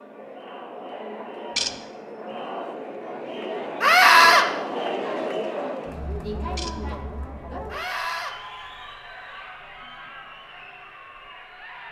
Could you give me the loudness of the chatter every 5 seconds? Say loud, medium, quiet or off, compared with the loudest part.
loud, loud, medium.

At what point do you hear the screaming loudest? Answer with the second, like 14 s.
4 s.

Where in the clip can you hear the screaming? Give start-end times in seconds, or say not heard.
3.8-4.5, 7.7-8.3.